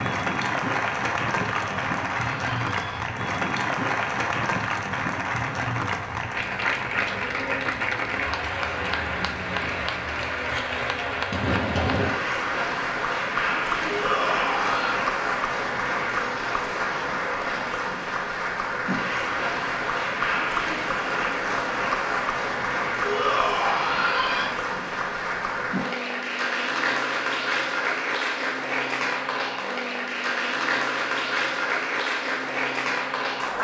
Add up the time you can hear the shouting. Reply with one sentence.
The shouting can be heard for 4 seconds in total.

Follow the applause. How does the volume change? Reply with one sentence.
The loudness of the applause stays about the same.